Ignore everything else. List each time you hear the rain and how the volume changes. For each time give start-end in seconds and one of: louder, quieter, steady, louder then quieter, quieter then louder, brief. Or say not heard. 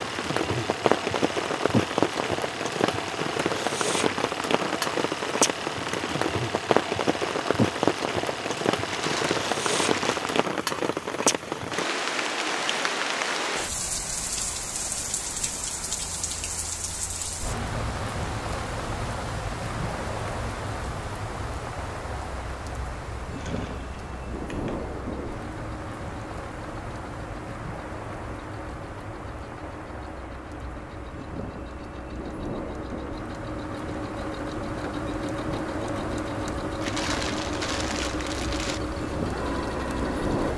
0.0-40.5 quieter.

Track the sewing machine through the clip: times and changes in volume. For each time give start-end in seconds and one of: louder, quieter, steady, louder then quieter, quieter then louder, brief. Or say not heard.
0.0-10.4 steady
23.4-40.5 louder.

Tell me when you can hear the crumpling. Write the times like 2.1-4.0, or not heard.
8.8-10.3, 36.8-38.8.